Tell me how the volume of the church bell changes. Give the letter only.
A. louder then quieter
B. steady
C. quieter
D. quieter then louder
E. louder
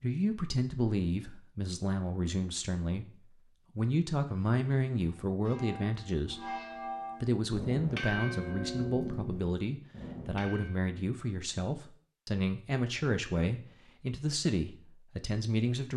A.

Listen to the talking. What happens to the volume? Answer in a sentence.
The loudness of the talking stays about the same.